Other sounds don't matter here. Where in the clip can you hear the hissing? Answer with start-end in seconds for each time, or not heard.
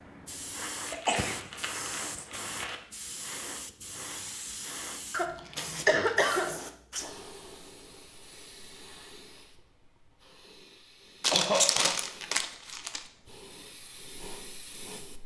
0.0-15.2.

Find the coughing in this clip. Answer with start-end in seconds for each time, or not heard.
0.9-2.2, 5.1-6.5, 11.3-11.9.